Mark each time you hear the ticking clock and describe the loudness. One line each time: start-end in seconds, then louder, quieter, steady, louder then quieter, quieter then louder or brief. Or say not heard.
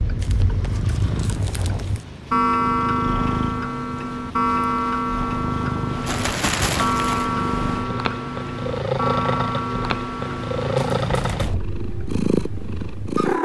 0.0-13.4 quieter.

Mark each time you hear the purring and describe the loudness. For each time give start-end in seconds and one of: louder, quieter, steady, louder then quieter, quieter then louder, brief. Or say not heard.
0.0-13.4 louder.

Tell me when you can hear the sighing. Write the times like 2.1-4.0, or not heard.
1.0-1.9, 11.0-11.7.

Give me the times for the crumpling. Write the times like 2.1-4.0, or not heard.
0.2-2.0, 6.0-7.3, 10.8-11.6.